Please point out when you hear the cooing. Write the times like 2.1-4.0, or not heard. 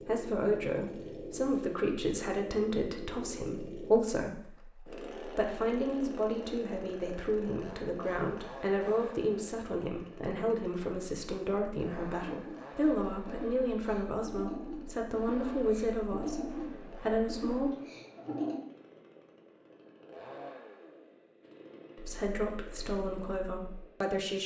12.2-18.6.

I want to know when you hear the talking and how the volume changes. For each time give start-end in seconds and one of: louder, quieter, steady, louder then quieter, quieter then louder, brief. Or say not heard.
0.0-17.7 steady
21.9-24.4 brief.